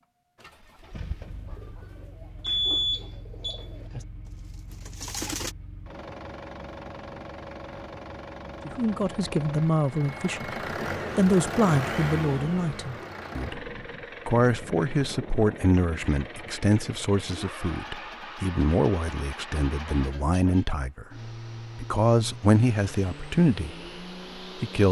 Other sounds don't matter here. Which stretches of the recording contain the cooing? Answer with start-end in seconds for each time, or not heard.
0.3-5.5.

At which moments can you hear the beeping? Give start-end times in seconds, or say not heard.
2.4-4.0.